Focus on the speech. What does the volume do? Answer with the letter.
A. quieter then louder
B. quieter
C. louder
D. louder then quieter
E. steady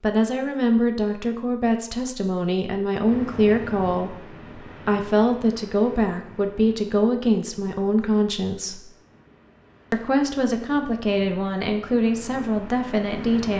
E.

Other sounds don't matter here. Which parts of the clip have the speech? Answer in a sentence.
You can hear the speech from 0.0 to 8.8 s and from 9.9 to 13.5 s.